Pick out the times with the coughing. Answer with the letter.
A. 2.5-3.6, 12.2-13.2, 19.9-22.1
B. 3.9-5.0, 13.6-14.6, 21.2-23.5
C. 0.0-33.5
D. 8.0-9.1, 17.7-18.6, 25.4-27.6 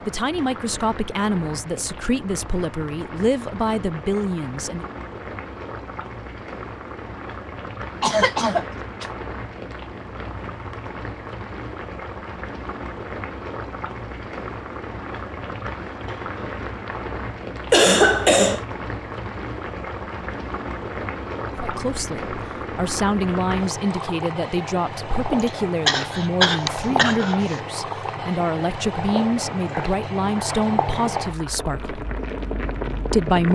D.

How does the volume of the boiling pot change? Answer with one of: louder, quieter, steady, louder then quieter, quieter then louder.
louder.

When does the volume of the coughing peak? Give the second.
18 s.